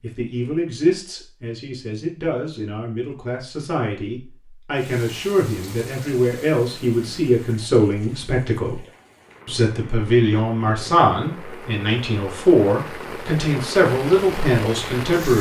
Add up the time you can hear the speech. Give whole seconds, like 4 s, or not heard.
15 s.